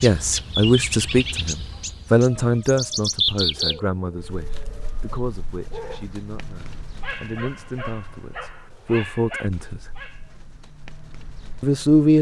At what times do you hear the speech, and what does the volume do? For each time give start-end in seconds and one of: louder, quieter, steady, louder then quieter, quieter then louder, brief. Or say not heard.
0.0-9.9 quieter then louder
11.6-12.1 brief.